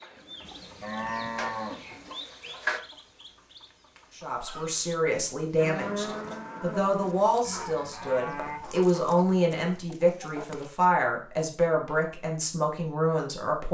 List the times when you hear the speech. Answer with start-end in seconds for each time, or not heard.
4.2-13.6.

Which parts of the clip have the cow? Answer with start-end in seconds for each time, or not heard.
0.0-2.8, 5.5-8.6.